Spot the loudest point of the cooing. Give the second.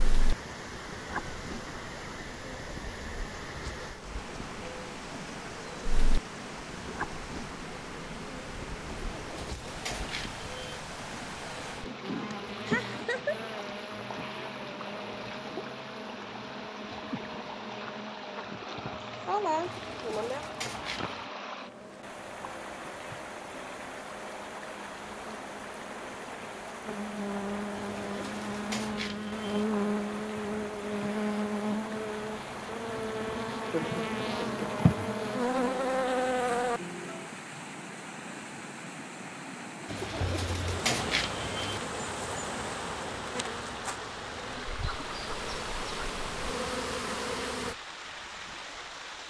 41 s.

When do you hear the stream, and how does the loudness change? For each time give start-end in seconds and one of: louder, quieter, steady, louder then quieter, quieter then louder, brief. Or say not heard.
0.0-49.2 steady.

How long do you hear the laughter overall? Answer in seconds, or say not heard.
3 s.